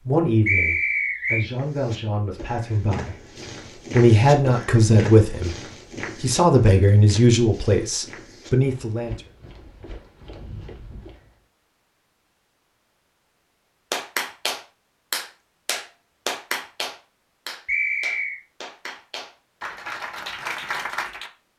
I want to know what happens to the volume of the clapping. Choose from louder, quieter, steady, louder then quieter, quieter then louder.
quieter then louder.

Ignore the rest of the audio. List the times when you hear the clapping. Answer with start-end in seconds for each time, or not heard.
13.9-21.3.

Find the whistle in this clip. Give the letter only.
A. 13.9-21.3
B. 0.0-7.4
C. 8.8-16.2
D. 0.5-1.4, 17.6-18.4
D.